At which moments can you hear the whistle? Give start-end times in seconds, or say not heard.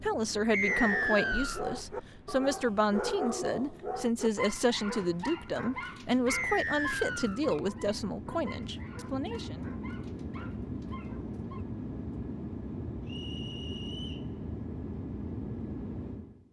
0.5-1.6, 6.2-7.4, 13.1-14.2.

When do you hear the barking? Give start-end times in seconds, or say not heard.
0.6-11.7.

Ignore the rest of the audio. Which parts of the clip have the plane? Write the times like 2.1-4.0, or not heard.
0.0-16.4.